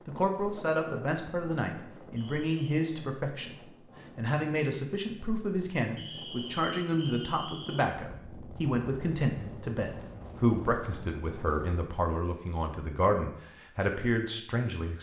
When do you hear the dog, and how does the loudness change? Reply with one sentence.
The dog can't be heard in this clip.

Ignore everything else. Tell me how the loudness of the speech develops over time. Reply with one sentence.
The volume of the speech stays about the same.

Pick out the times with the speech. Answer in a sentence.
The speech can be heard from 0.1 to 14.9 s.